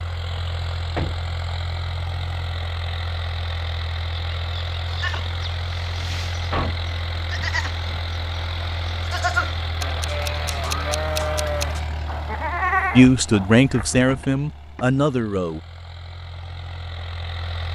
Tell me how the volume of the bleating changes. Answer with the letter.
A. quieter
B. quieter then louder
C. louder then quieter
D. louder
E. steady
D.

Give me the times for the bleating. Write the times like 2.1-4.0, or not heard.
4.8-14.2.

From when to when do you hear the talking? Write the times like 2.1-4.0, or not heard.
12.9-15.6.